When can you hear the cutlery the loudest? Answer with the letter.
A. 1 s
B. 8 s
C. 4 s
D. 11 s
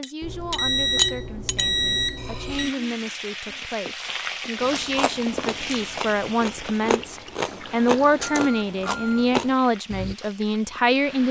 A.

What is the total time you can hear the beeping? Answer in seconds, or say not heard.
4 s.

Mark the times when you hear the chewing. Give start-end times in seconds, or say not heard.
4.6-10.2.